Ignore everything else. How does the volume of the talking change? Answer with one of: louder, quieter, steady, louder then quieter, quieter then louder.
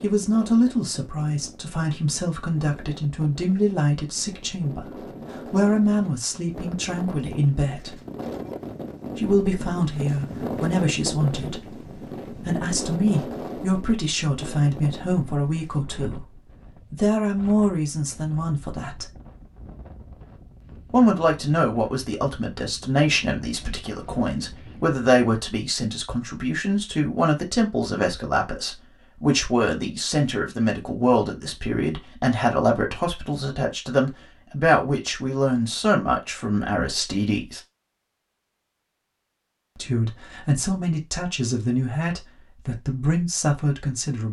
steady.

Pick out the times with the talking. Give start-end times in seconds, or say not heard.
0.0-8.0, 9.2-19.1, 20.9-37.6, 39.8-44.2.